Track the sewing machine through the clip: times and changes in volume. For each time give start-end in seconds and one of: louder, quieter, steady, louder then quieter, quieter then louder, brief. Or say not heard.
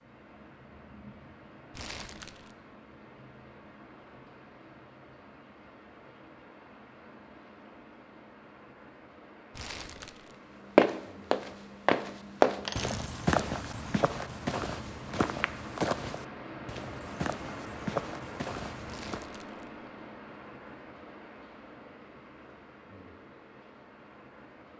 not heard.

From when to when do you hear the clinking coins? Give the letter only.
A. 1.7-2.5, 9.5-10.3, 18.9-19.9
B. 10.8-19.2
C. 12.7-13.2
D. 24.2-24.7
C.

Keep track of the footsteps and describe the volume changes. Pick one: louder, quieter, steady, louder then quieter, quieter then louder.
quieter.